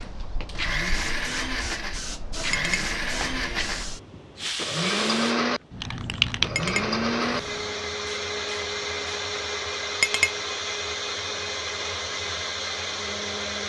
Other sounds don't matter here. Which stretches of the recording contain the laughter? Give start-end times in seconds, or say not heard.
not heard.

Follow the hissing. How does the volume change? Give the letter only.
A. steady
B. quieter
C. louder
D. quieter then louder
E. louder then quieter
E.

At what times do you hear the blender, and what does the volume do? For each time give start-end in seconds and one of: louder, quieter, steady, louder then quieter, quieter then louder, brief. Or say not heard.
0.0-13.6 steady.